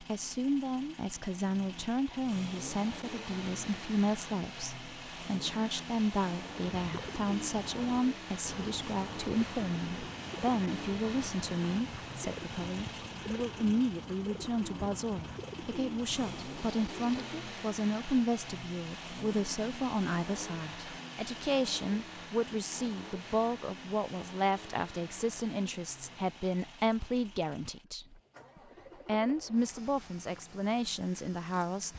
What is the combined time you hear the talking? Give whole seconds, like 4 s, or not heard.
31 s.